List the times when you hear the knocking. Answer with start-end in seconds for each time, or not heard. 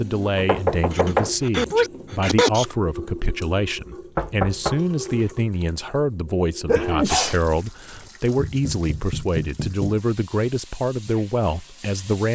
0.3-1.9, 4.2-5.3, 8.3-10.1.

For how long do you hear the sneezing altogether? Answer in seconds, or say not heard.
3 s.